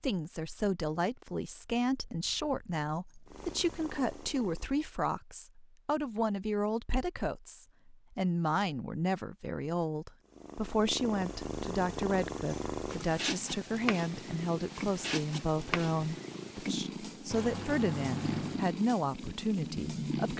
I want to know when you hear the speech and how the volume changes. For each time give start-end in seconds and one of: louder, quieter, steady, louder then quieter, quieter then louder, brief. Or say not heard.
0.0-20.3 steady.